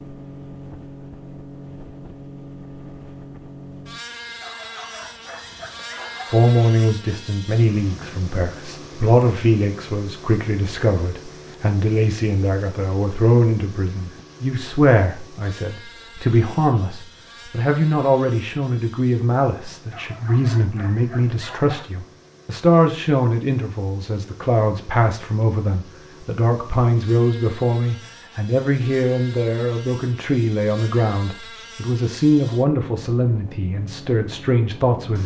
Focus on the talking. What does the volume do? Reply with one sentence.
The loudness of the talking stays about the same.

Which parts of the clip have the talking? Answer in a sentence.
The talking can be heard from 6.3 to 35.2 s.